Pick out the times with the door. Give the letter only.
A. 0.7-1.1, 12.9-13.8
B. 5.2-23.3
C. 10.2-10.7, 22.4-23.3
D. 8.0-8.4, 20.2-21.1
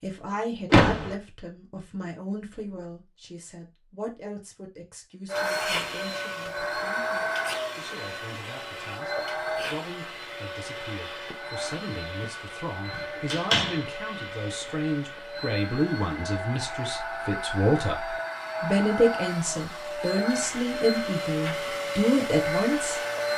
A.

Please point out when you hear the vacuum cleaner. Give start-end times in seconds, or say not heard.
5.2-23.3.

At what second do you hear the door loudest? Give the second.
1 s.